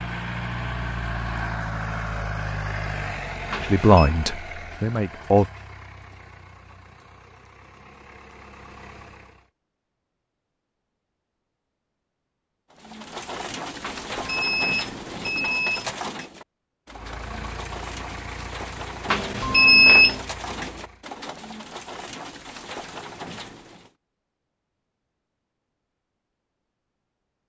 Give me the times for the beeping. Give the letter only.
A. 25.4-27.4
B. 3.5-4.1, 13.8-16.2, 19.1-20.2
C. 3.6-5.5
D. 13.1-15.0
B.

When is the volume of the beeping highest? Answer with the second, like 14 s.
20 s.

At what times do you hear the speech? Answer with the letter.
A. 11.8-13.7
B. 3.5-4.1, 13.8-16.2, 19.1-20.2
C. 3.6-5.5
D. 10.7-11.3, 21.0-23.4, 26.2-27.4
C.